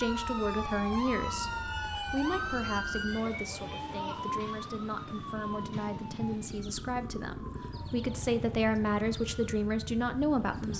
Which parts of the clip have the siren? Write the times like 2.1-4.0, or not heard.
0.0-10.7.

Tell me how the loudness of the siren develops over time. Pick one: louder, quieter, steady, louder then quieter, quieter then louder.
quieter.